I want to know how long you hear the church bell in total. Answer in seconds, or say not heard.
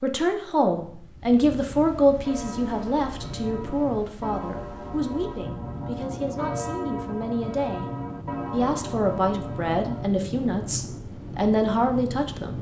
8 s.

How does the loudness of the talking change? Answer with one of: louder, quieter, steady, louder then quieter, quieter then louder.
quieter then louder.